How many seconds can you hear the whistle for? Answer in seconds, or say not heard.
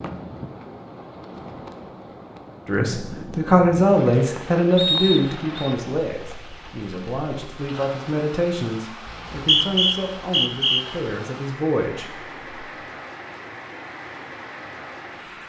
3 s.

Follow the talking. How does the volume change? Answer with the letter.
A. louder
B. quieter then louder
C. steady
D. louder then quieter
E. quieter
E.